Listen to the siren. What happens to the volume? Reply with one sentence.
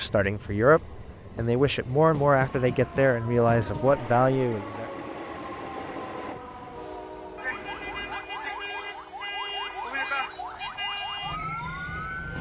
The volume of the siren goes up.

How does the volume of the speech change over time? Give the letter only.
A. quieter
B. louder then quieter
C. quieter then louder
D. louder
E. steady
E.